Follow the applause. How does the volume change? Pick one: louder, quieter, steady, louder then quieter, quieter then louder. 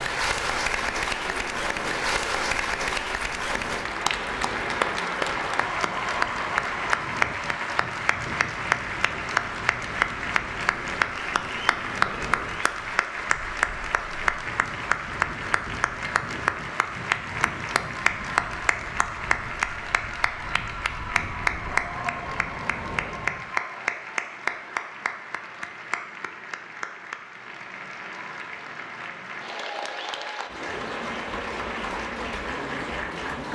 quieter.